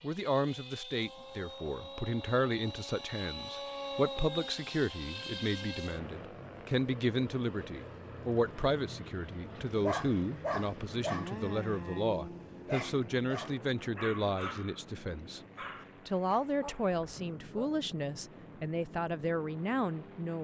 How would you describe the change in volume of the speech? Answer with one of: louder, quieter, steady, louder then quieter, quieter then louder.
steady.